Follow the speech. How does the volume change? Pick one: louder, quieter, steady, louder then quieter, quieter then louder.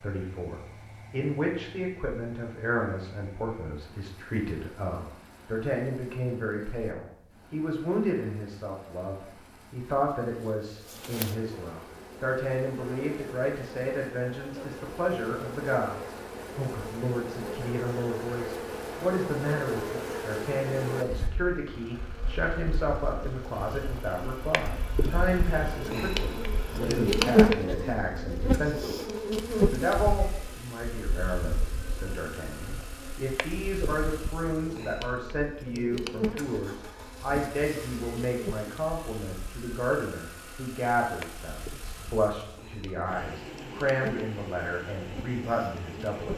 steady.